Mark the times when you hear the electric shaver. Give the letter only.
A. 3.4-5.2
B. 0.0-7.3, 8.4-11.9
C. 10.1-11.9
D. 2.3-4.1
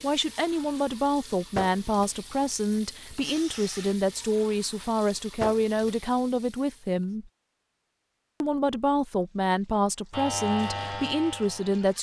C.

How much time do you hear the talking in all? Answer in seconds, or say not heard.
11 s.